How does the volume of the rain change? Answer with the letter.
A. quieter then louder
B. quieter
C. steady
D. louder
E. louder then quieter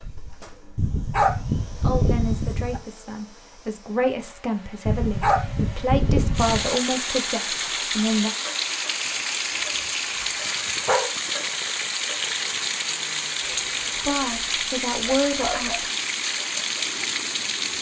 C.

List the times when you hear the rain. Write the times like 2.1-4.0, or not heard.
6.3-17.7.